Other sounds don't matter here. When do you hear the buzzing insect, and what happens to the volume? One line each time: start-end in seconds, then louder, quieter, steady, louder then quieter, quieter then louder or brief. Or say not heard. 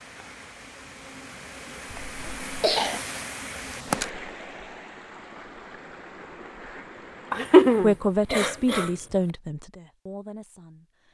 0.0-4.1 louder.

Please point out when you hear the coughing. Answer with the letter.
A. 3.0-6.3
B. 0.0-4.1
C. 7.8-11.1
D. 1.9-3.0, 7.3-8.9
D.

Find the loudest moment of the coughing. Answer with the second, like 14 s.
8 s.